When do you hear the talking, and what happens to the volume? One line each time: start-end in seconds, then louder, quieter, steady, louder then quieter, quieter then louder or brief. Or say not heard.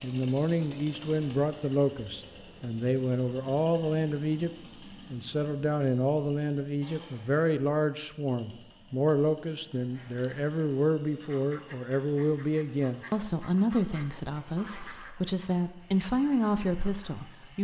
0.0-4.5 quieter then louder
5.1-17.5 steady.